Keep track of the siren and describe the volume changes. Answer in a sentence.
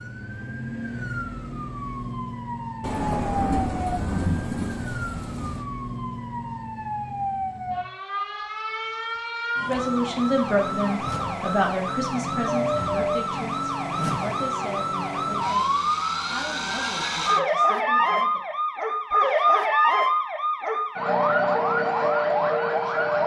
The volume of the siren goes up.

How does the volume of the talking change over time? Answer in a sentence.
The loudness of the talking goes down.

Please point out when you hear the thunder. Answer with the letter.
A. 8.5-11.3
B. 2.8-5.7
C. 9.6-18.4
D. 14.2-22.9
B.